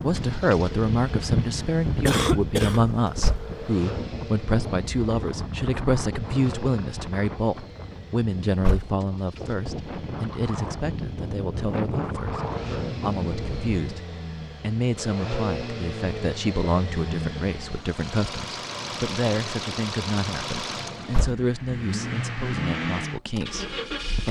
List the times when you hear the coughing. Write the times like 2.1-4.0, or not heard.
2.0-2.9.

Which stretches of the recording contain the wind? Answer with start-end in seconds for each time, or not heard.
0.0-14.1.